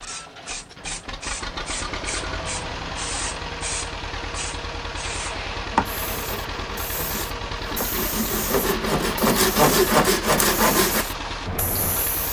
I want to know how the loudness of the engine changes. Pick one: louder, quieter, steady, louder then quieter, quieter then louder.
steady.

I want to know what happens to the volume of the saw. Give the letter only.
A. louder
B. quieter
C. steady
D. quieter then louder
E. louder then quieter
A.